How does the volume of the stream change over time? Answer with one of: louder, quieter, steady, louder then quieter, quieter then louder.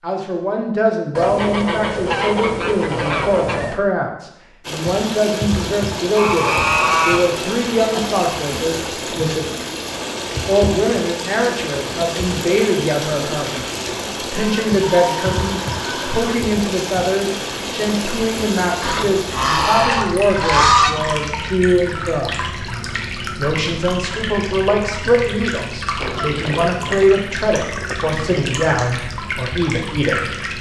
steady.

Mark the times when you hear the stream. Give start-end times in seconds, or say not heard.
4.6-30.5.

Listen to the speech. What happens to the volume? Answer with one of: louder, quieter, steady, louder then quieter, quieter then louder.
steady.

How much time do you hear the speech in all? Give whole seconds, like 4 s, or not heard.
28 s.